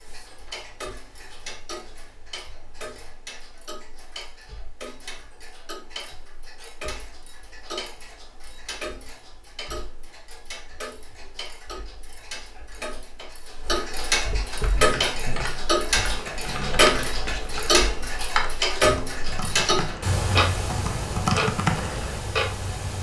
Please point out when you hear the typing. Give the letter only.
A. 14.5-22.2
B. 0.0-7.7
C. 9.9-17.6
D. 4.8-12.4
A.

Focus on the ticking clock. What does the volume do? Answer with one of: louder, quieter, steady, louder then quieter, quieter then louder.
louder.